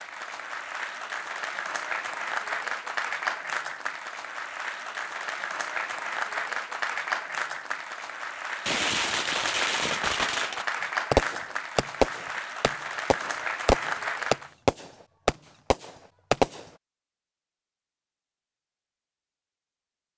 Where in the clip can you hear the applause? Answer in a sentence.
You can hear the applause from 0.0 to 14.5 s.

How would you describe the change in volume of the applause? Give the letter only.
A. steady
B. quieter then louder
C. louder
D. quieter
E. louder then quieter
A.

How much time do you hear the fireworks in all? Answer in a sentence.
You can hear the fireworks for 8 seconds altogether.